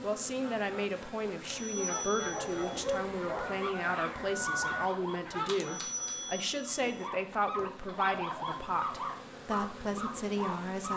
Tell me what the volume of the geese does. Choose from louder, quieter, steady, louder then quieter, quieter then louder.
louder.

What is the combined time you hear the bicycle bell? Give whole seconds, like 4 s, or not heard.
3 s.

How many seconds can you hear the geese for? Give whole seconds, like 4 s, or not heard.
6 s.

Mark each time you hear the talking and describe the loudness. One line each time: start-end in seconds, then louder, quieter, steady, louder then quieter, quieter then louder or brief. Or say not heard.
0.0-10.9 steady.